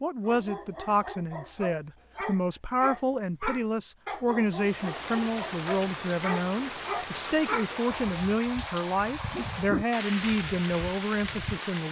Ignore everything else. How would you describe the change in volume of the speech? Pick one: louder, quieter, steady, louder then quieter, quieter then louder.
steady.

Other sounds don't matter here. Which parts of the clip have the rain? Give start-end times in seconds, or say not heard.
4.5-11.8.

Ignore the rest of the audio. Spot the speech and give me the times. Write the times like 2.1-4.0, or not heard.
0.0-11.8.